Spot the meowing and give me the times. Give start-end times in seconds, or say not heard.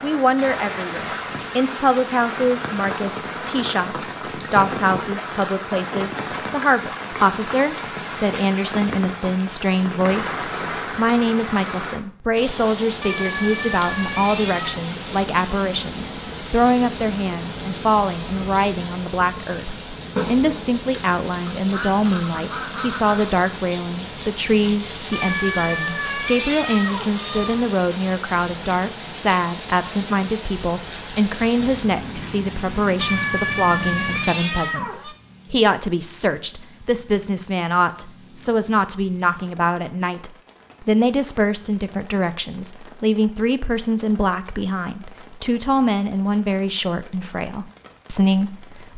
13.0-14.8, 25.1-27.6, 33.0-35.1.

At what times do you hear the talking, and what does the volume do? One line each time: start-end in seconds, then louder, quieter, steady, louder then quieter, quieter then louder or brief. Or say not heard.
0.0-48.9 steady.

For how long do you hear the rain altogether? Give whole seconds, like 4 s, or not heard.
49 s.